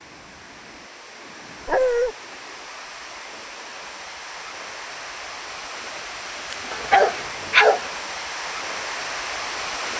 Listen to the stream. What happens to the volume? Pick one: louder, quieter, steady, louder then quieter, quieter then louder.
louder.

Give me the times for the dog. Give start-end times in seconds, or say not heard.
1.6-2.1, 6.7-7.8.